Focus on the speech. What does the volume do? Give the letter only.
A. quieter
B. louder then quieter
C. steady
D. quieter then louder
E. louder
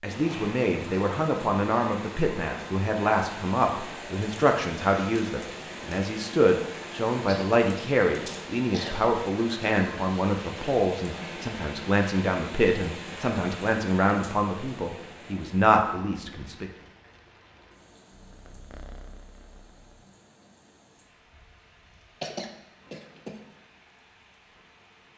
C.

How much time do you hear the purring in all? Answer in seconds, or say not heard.
2 s.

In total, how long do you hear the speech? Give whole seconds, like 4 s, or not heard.
17 s.